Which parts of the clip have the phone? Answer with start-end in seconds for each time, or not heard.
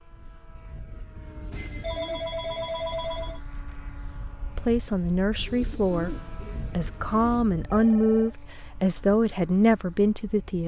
1.5-3.4, 7.7-8.3.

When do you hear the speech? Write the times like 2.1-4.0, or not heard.
4.5-10.6.